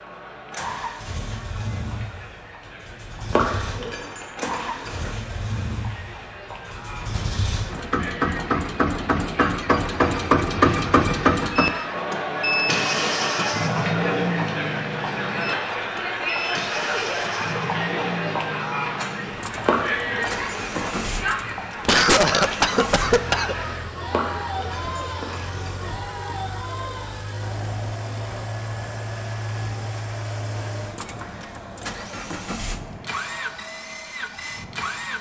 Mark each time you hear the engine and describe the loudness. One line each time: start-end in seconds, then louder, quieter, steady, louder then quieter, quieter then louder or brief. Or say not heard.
0.0-35.1 louder then quieter.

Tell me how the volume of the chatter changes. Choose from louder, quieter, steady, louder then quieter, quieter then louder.
louder then quieter.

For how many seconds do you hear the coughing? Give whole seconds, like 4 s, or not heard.
2 s.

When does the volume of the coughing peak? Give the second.
22 s.